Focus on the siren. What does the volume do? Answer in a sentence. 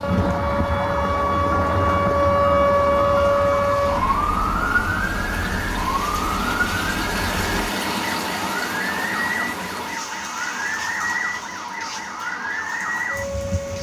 The volume of the siren goes down.